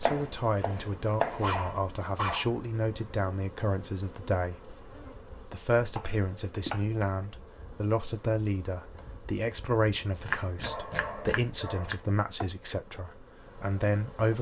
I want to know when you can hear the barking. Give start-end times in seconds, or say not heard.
1.4-2.5, 10.6-12.1.